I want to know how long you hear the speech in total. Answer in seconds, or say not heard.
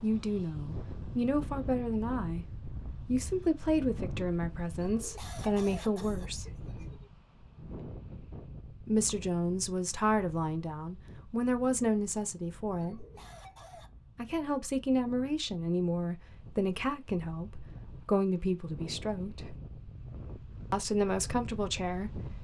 17 s.